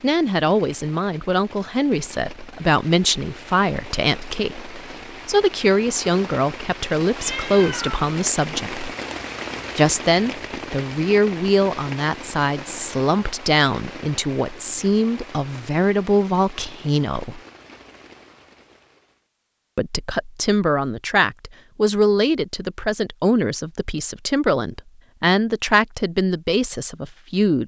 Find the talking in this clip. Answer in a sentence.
You can hear the talking from 0.0 to 8.8 s, from 9.8 to 17.4 s and from 19.8 to 27.6 s.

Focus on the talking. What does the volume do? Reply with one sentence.
The volume of the talking stays about the same.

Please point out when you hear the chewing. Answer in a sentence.
The chewing can't be heard in this clip.